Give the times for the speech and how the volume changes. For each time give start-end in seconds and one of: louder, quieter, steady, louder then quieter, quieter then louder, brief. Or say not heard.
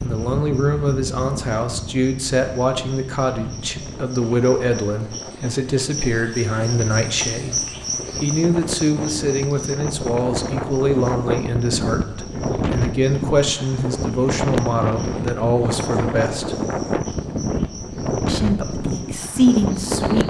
0.0-16.6 steady
18.2-20.2 brief.